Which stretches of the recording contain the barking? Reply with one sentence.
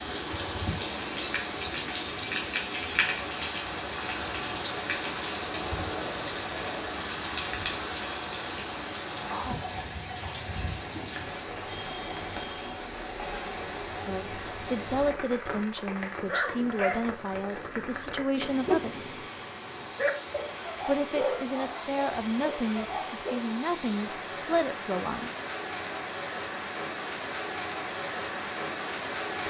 The barking can be heard from 16.2 to 23.4 s.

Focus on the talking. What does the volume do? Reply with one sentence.
The volume of the talking stays about the same.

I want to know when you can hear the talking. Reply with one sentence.
The talking can be heard from 14.1 to 19.2 s and from 20.9 to 25.3 s.